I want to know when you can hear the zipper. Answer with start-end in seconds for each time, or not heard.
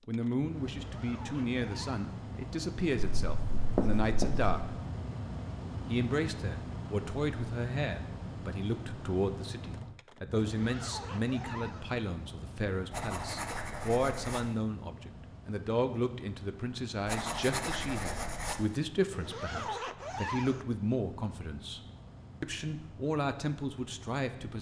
0.8-2.0, 10.5-11.9, 19.1-20.6.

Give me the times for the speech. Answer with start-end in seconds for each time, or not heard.
0.1-4.7, 5.8-21.8, 22.4-24.5.